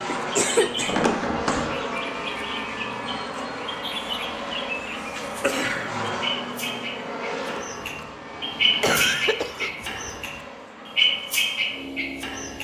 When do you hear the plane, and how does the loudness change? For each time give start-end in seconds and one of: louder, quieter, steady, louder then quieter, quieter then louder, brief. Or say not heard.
0.0-12.6 quieter.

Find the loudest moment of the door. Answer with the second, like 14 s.
1 s.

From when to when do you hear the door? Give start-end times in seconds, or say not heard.
0.8-1.8, 7.3-9.2.